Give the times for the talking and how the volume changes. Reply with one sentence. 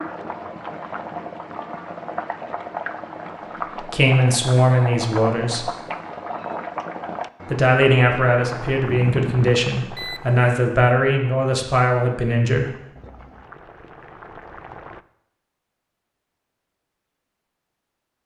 The talking can be heard briefly from 3.8 to 5.7 s; and from 7.5 to 12.7 s, at a steady volume.